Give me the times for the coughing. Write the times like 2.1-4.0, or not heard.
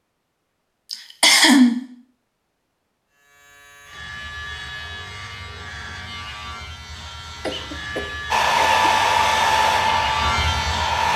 0.9-1.8, 7.4-8.9.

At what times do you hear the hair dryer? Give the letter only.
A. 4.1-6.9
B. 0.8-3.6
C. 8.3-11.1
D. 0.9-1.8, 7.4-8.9
C.